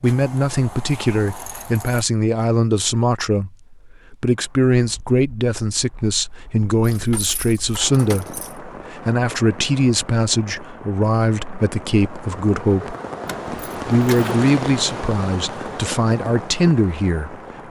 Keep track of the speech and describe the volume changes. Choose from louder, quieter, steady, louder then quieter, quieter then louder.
steady.